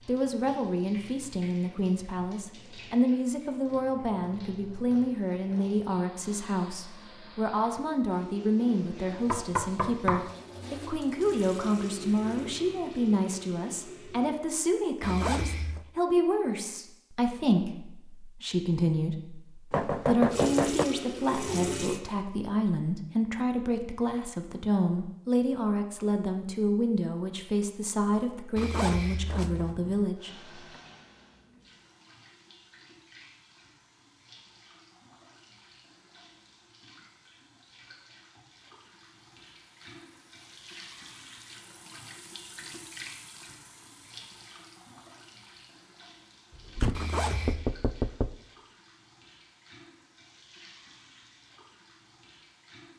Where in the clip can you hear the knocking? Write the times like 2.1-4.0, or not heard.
9.3-10.3, 19.7-20.9, 46.5-48.4.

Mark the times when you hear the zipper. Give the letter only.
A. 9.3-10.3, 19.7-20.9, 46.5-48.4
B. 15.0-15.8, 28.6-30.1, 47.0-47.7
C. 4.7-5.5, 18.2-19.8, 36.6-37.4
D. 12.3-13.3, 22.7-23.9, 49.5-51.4
B.